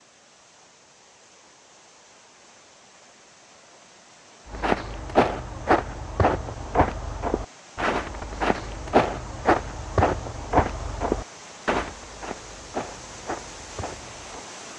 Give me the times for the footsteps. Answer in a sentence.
The footsteps can be heard from 4.5 to 14.4 s.